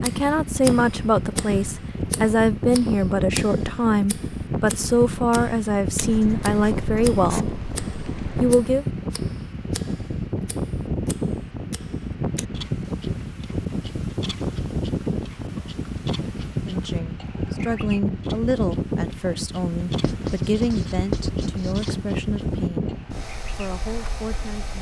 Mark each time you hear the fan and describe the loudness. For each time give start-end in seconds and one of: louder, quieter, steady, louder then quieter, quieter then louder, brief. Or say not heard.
0.0-24.7 steady.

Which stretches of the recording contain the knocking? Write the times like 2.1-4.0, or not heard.
not heard.